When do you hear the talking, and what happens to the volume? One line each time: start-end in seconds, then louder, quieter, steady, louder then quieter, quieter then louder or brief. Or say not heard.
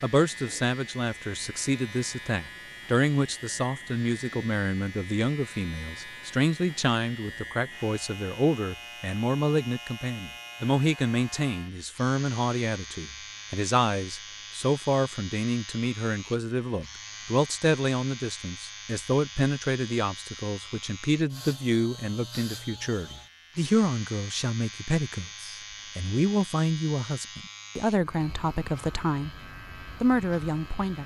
0.0-29.3 steady
30.0-31.0 brief.